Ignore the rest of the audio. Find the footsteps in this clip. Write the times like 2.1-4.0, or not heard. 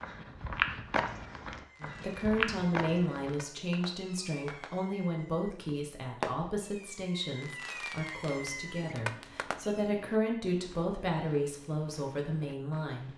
0.0-3.4, 8.3-13.1.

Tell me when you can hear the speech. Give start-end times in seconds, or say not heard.
1.8-13.1.